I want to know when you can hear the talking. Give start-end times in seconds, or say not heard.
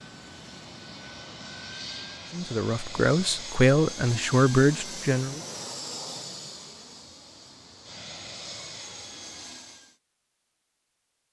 2.3-5.4.